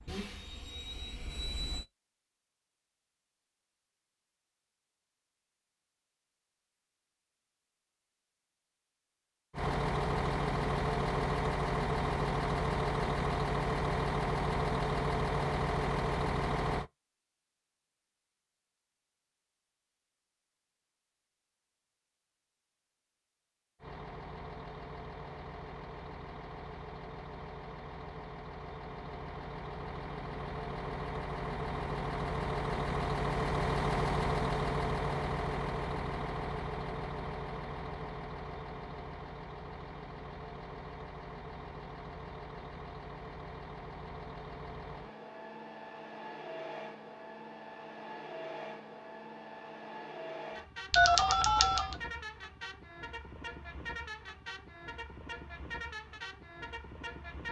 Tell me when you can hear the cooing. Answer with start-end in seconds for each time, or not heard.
not heard.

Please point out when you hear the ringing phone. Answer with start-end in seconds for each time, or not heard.
50.9-52.0.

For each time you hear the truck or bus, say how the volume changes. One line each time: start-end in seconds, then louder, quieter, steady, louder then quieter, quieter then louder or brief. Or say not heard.
0.0-1.9 brief
9.5-16.9 steady
23.8-57.4 louder then quieter.